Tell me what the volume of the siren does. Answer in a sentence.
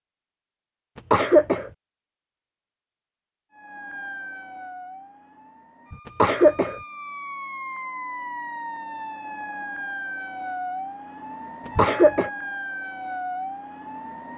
The volume of the siren goes up.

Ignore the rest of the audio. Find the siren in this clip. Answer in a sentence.
The siren can be heard from 3.5 to 14.3 s.